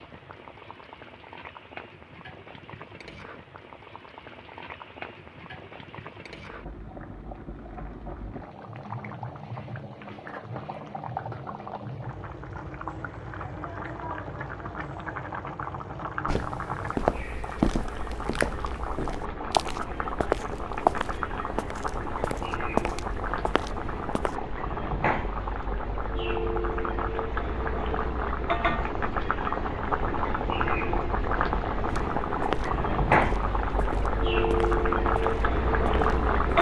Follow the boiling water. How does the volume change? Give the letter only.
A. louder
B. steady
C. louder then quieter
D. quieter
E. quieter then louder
A.